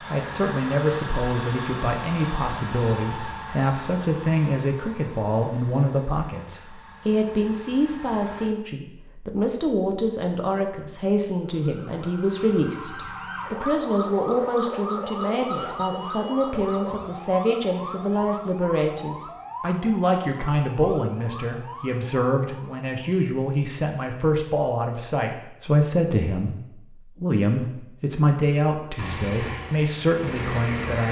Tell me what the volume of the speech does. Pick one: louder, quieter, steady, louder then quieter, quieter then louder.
steady.